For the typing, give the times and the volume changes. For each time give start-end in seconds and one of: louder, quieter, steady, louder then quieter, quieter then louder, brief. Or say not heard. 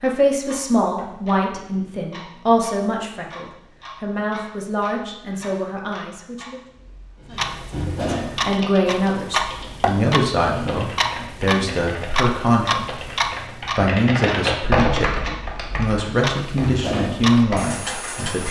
8.3-17.8 louder then quieter.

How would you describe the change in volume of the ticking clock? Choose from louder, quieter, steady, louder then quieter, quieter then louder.
louder.